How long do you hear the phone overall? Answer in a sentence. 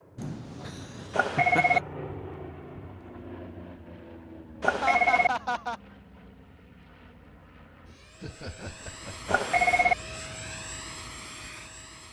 The phone can be heard for 2 seconds in total.